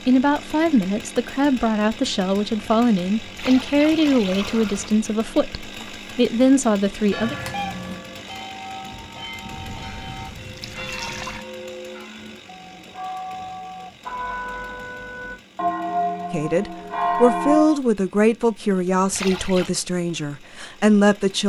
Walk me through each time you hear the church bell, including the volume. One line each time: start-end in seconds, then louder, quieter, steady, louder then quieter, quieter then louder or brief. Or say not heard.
7.0-17.8 louder.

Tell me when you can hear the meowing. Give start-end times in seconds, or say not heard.
7.2-8.0.